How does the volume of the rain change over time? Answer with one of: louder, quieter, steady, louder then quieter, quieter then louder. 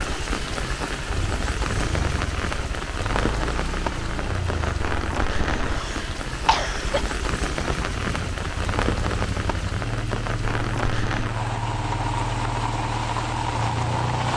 steady.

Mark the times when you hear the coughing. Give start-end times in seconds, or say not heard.
5.7-7.0.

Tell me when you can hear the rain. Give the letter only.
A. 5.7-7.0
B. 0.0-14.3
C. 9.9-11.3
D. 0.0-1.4
B.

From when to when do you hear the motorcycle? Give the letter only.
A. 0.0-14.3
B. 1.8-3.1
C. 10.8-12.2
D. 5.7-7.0
A.